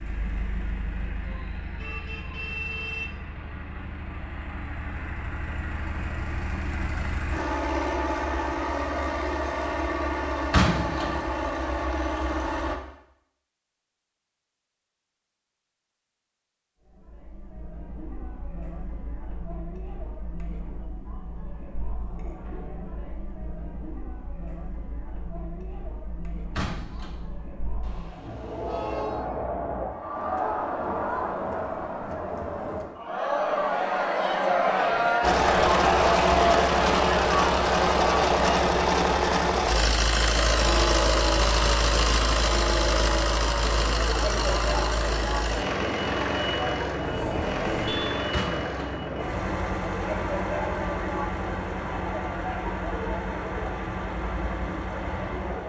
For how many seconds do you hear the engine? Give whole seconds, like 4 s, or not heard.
33 s.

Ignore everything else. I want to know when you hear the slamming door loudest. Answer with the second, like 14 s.
11 s.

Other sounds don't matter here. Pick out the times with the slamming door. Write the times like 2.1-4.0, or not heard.
10.5-11.2, 26.6-27.2, 48.3-48.7.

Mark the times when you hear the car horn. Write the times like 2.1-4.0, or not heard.
1.2-3.0, 27.8-29.2, 47.0-48.2.